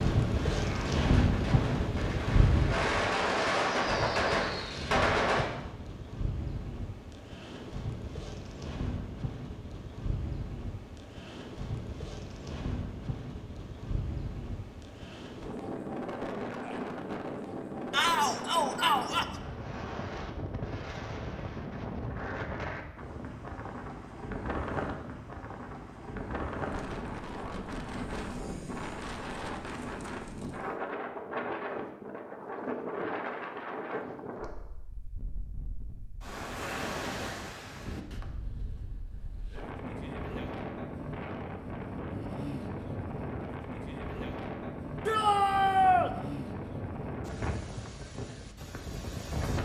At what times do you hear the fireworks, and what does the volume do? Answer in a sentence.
The fireworks can be heard from 0.0 to 5.5 s, getting louder.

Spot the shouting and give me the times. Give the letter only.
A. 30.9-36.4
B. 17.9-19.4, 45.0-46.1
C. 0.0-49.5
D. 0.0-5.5
B.